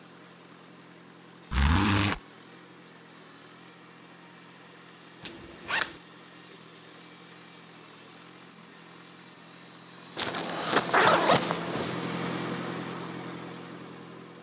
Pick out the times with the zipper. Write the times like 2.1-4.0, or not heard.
1.5-2.1, 5.2-6.0, 10.2-12.0.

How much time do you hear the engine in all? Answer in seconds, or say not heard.
14 s.